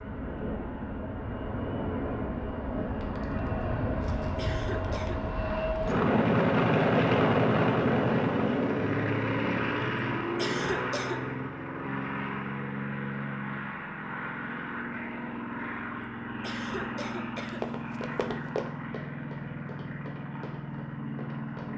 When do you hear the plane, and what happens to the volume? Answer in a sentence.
You can hear the plane from 0.0 to 21.7 s, getting louder then quieter.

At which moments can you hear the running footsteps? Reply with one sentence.
The running footsteps can be heard from 17.4 to 21.7 s.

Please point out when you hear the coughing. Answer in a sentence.
You can hear the coughing from 4.3 to 5.2 s, from 10.3 to 11.2 s and from 16.4 to 17.6 s.